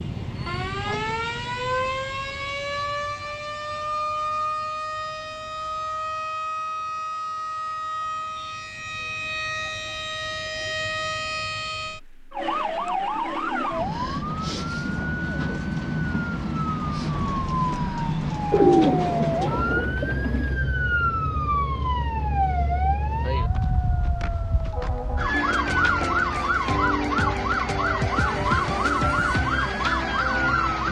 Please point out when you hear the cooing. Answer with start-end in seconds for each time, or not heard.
18.5-20.6.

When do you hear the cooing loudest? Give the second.
19 s.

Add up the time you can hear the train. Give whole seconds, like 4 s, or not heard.
not heard.